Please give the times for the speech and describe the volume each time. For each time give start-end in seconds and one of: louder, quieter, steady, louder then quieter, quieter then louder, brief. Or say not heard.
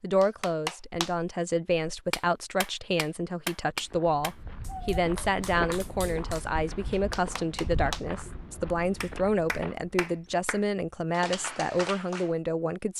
0.0-12.9 steady.